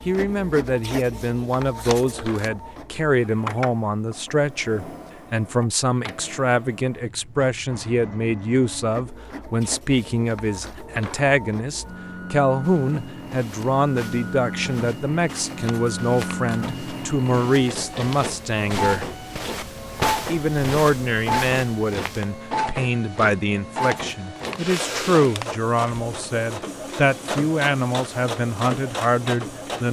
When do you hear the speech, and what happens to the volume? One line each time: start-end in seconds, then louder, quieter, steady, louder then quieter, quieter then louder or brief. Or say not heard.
0.1-19.1 steady
20.2-29.8 steady.